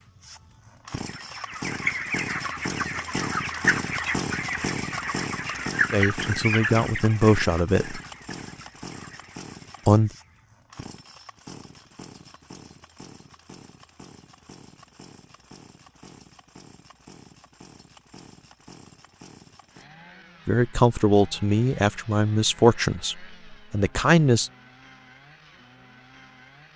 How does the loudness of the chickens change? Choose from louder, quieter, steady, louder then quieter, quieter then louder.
quieter.